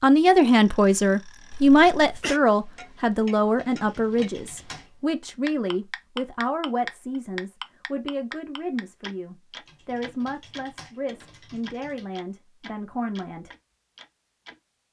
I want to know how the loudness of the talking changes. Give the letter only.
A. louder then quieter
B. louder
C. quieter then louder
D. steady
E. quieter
E.